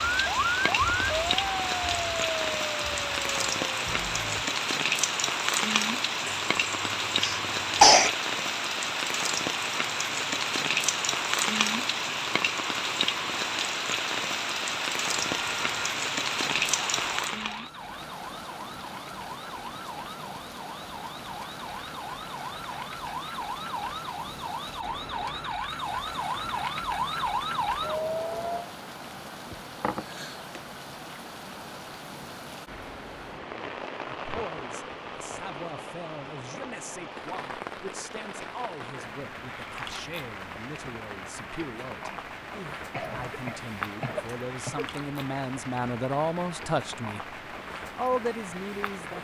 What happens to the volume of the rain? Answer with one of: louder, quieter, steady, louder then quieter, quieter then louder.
quieter.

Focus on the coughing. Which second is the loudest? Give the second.
8 s.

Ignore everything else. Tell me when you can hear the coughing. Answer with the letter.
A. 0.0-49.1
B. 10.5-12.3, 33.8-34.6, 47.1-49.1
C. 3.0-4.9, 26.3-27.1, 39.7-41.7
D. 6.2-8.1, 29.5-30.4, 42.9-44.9
D.